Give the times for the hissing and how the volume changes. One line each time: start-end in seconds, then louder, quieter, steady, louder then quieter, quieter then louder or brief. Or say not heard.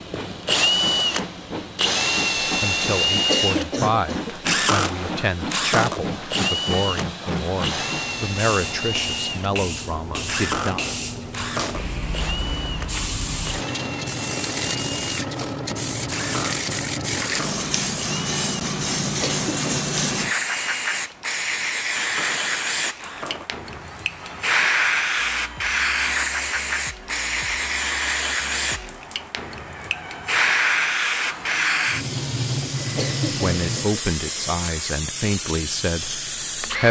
0.0-36.8 louder.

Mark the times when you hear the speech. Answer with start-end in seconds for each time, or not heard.
2.4-10.8, 33.3-36.8.